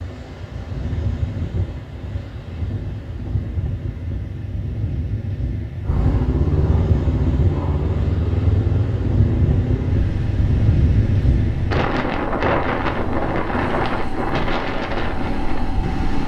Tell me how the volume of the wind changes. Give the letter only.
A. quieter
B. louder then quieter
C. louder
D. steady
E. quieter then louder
C.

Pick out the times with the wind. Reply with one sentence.
You can hear the wind from 0.0 to 16.2 s.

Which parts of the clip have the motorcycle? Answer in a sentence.
The motorcycle can be heard from 5.8 to 16.2 s.